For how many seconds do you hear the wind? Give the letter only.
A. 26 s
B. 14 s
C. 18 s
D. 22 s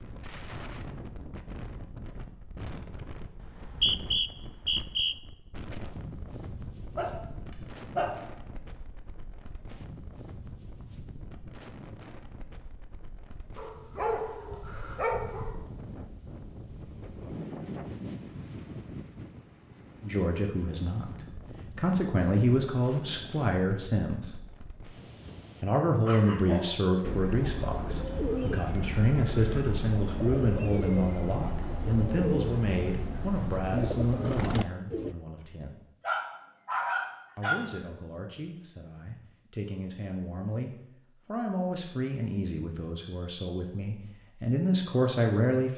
A.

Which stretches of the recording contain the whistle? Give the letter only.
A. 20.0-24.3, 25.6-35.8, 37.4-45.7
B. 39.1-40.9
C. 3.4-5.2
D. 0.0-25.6
C.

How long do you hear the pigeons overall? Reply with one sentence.
The pigeons can be heard for 8 seconds in total.